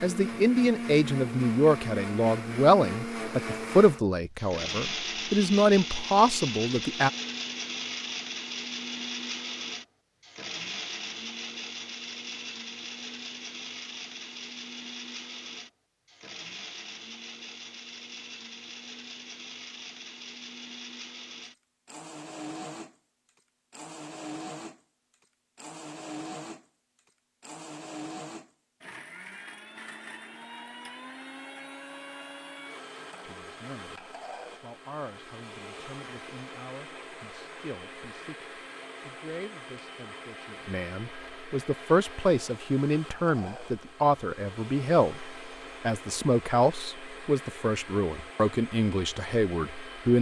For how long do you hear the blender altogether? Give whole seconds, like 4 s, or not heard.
50 s.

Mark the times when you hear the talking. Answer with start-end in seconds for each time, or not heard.
0.0-7.1, 33.2-50.1.